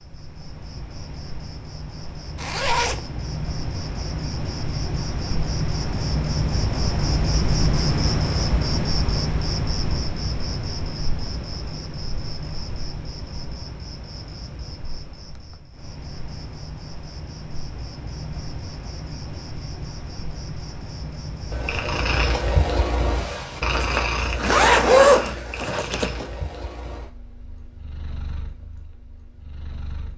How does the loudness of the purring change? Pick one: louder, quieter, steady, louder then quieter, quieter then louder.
quieter.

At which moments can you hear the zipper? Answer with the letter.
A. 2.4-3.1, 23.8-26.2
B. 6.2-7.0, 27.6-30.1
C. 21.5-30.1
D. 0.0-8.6
A.